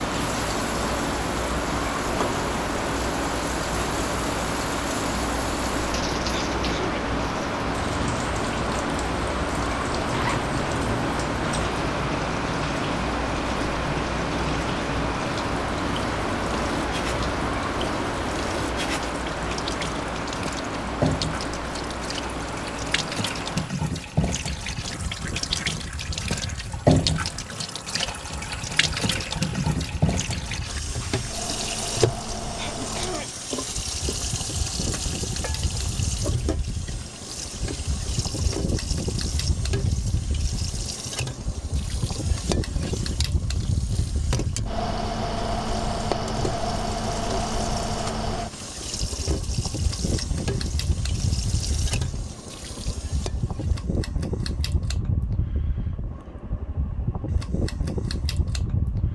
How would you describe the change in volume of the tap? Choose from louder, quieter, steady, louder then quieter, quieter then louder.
louder then quieter.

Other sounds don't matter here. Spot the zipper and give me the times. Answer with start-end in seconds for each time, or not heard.
10.1-11.6.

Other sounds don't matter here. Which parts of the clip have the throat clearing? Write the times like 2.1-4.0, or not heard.
6.3-7.0, 32.5-33.3.